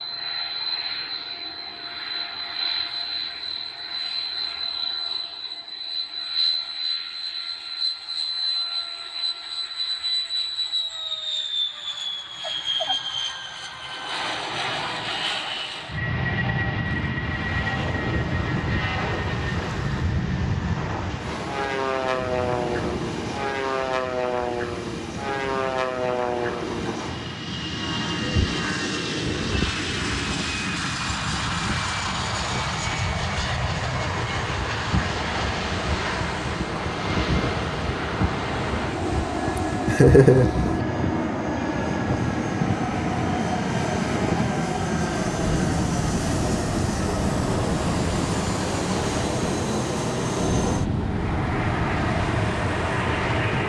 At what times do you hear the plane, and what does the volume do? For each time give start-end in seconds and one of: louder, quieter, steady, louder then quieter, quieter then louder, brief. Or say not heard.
0.0-53.6 steady.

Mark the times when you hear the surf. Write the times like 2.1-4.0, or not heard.
17.2-53.6.